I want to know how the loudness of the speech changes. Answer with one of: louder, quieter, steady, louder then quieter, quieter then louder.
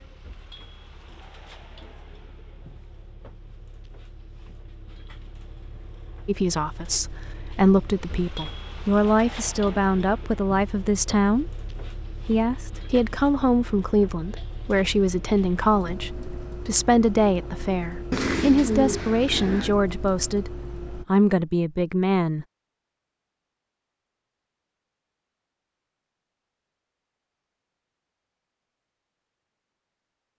steady.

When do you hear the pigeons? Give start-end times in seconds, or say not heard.
18.1-19.8.